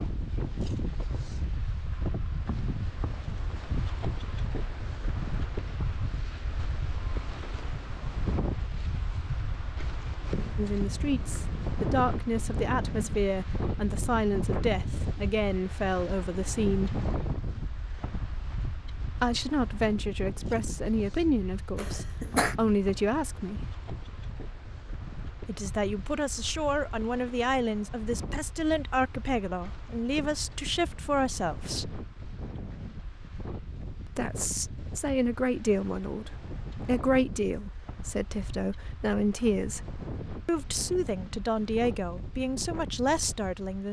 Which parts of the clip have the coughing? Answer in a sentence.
The coughing can be heard from 21.8 to 22.6 s.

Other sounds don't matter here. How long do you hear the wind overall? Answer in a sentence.
The wind can be heard for 44 seconds in total.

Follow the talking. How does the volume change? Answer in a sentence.
The loudness of the talking stays about the same.